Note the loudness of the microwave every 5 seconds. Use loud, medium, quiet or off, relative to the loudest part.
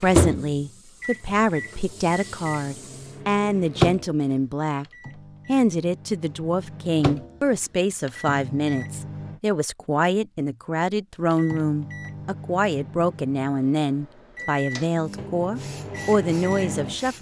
loud, medium, medium, medium.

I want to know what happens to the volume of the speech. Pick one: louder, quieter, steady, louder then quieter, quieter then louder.
steady.